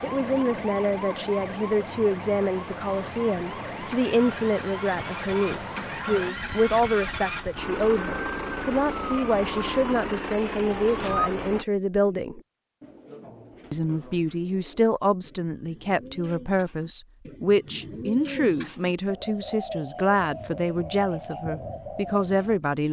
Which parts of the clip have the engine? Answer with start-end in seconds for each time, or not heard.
0.0-11.7.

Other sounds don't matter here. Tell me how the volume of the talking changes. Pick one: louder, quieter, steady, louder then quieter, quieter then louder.
steady.